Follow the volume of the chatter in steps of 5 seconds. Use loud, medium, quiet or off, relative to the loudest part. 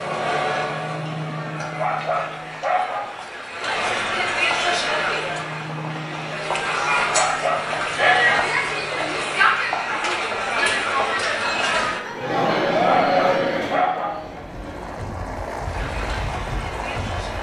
loud, loud, loud, quiet.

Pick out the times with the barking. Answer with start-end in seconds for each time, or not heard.
1.6-3.1, 7.0-8.5, 12.8-14.2.